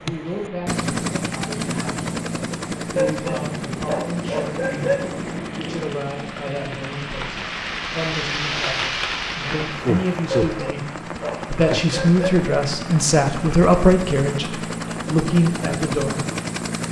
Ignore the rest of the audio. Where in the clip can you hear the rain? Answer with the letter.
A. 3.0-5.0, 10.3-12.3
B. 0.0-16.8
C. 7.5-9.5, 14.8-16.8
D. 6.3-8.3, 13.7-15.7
B.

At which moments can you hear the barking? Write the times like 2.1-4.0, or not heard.
3.0-5.0, 10.3-12.3.